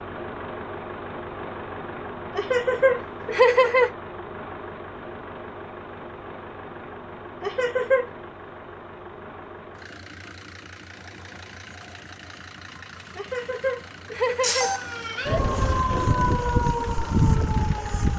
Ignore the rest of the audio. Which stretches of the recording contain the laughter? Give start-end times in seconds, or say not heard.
2.4-3.9, 7.4-8.1, 13.2-14.8.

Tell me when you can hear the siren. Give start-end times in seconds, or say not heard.
14.4-18.1.